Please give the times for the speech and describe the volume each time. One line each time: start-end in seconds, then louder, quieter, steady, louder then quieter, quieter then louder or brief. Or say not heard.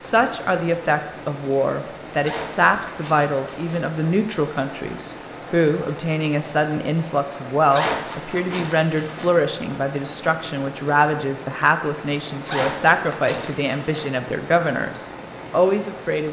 0.0-16.2 steady.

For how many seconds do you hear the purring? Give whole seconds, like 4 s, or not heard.
not heard.